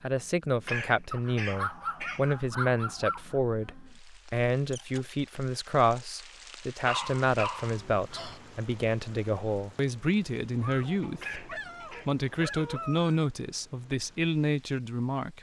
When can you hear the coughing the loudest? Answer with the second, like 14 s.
1 s.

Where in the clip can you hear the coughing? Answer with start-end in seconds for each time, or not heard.
0.7-2.2, 11.2-12.1.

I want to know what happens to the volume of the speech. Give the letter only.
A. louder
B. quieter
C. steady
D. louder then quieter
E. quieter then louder
C.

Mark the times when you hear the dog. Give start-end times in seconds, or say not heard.
1.1-3.4, 6.8-8.4, 10.6-13.3.